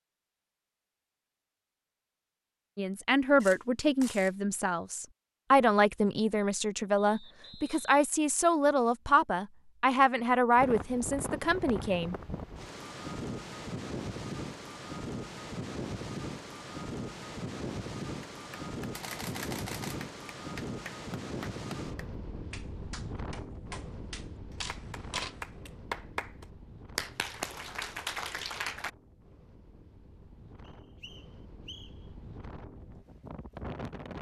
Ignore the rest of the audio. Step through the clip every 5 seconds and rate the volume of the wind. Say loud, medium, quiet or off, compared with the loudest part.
off, off, loud, loud, loud, quiet, medium.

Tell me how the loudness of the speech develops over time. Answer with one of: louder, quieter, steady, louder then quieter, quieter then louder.
steady.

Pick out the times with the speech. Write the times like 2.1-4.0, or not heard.
2.8-12.2.